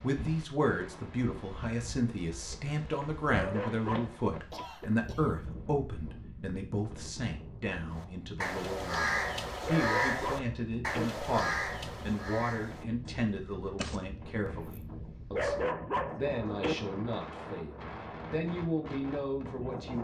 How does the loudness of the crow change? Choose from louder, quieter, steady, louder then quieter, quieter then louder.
quieter.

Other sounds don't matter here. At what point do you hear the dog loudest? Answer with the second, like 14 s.
16 s.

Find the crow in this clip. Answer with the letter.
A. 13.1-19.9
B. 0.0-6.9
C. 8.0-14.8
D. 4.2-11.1
C.